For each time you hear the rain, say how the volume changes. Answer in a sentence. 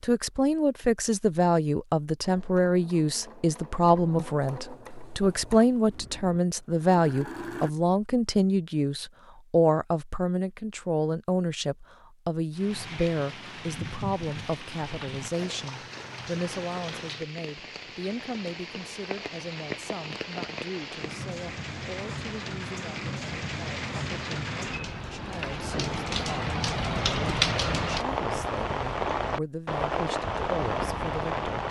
The rain can be heard from 12.6 to 31.6 s, getting louder.